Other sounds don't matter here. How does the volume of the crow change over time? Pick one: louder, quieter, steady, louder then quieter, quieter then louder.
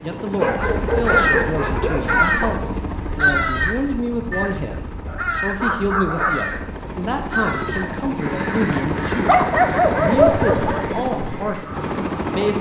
quieter.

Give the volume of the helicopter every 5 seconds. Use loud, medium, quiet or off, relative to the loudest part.
medium, loud, loud.